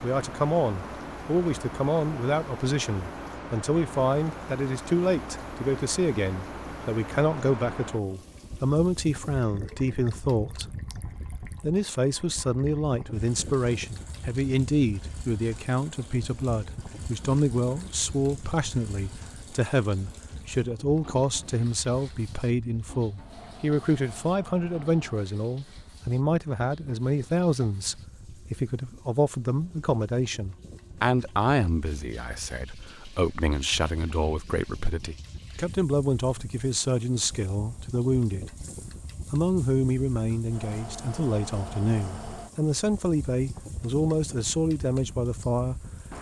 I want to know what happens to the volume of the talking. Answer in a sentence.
The loudness of the talking stays about the same.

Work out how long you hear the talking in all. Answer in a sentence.
You can hear the talking for 44 seconds altogether.